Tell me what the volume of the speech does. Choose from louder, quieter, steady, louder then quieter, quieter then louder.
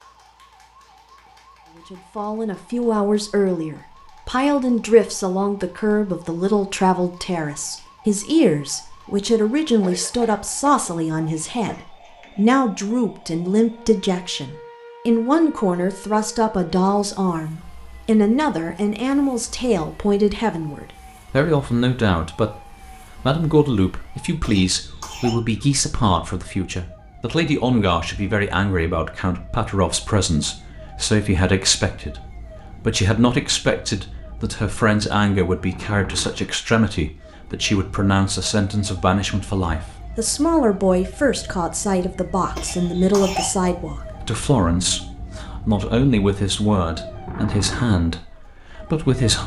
steady.